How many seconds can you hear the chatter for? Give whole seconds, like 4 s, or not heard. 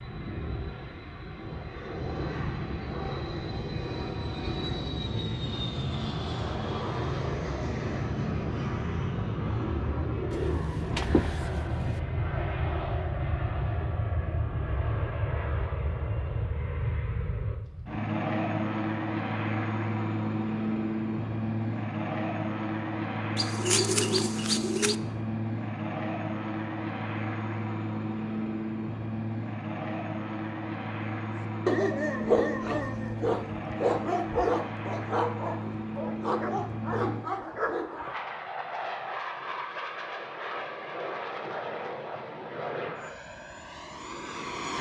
not heard.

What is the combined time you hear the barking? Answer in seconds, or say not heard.
7 s.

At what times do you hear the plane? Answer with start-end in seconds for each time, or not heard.
0.0-44.7.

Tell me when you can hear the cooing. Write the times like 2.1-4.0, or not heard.
10.3-12.0, 23.4-24.9.